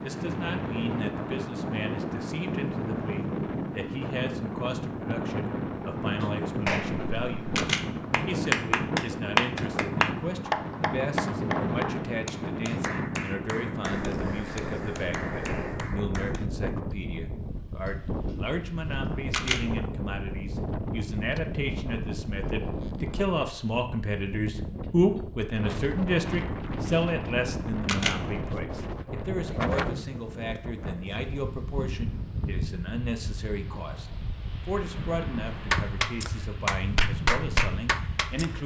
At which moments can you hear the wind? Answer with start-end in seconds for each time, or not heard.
0.0-38.6.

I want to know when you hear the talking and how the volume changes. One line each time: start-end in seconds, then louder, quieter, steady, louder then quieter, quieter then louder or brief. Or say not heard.
0.0-7.6 steady
8.2-38.6 louder then quieter.